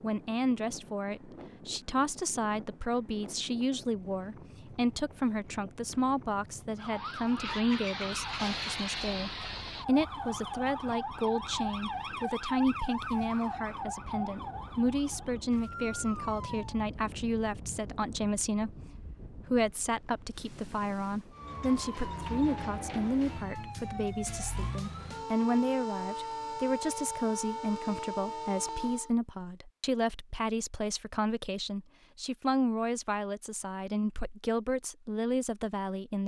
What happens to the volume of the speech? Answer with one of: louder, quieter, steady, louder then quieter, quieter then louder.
steady.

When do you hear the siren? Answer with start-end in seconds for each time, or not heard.
6.8-16.8, 21.3-29.1.